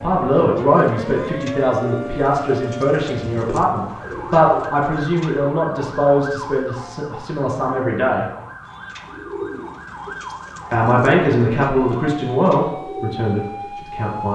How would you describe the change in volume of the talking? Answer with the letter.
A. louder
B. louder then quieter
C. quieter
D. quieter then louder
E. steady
E.